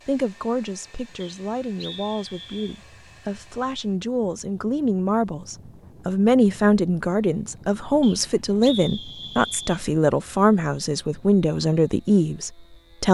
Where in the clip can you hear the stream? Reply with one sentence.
The stream can't be heard in this clip.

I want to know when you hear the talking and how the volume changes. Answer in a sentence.
The talking can be heard from 0.1 to 13.0 s, getting louder.